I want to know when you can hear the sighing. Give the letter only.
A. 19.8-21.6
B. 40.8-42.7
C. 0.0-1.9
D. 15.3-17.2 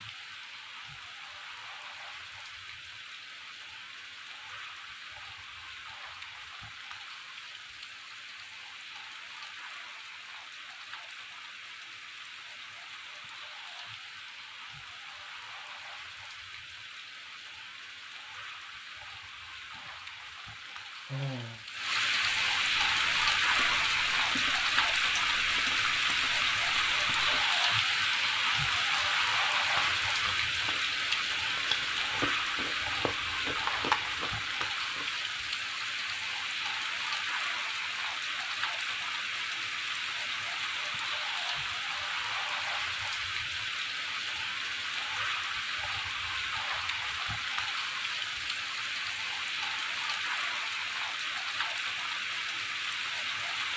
A.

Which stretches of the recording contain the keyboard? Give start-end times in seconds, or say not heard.
not heard.